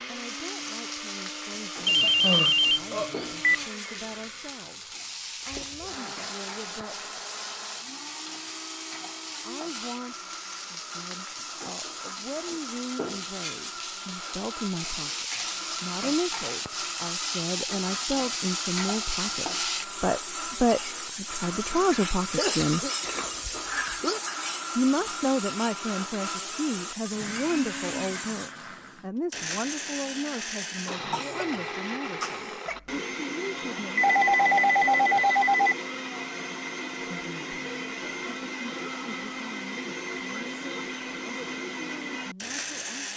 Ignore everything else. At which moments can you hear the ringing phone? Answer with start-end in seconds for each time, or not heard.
1.9-3.6, 23.2-24.1, 34.0-35.8.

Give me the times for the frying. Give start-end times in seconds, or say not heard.
0.0-28.6.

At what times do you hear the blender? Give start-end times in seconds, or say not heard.
0.0-43.1.